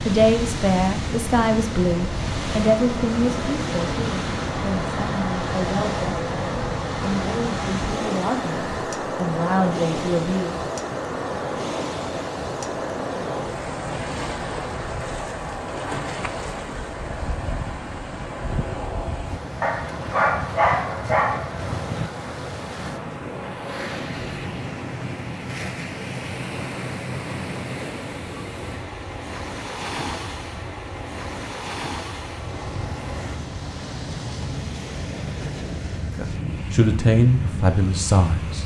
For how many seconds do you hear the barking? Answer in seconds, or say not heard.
2 s.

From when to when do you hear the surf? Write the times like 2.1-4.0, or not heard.
0.0-38.6.